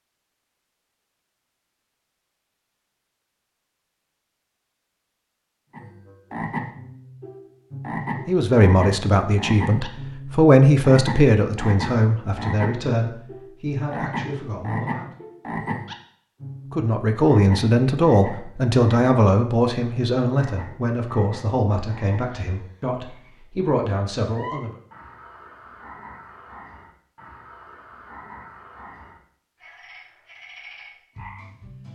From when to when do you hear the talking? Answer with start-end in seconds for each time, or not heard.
8.2-15.1, 16.7-24.8.